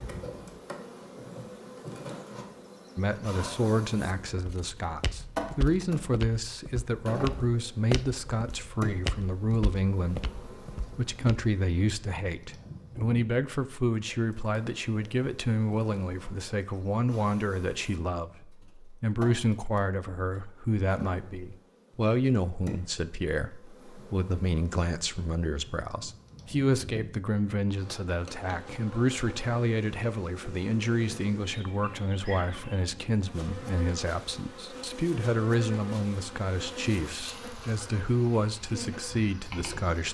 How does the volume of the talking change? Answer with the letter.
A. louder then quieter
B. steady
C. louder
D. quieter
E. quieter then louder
B.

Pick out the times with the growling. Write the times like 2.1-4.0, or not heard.
not heard.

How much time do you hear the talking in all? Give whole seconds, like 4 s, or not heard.
37 s.